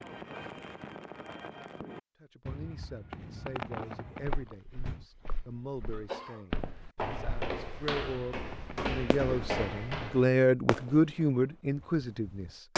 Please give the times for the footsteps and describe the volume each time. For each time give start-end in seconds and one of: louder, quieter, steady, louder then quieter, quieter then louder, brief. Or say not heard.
4.2-10.2 louder.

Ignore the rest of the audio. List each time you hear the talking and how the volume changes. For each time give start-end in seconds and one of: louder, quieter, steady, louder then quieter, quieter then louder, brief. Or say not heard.
2.2-12.7 louder.